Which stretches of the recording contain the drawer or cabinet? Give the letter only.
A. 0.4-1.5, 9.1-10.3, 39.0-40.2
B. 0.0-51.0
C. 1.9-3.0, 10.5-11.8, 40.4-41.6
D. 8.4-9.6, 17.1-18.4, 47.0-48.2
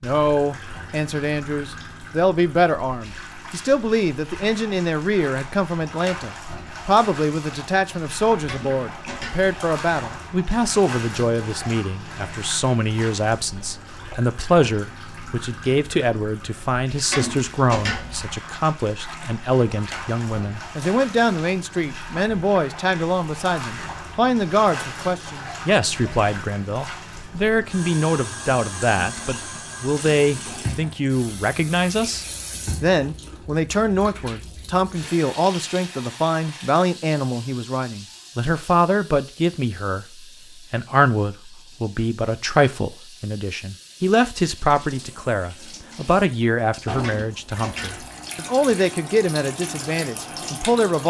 D.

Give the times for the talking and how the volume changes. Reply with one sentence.
You can hear the talking from 0.0 to 51.0 s, at a steady volume.